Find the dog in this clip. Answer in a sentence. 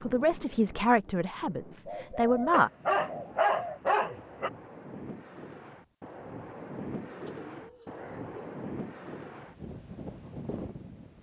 You can hear the dog from 2.5 to 4.5 s.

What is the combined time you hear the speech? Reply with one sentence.
The speech can be heard for 3 seconds in total.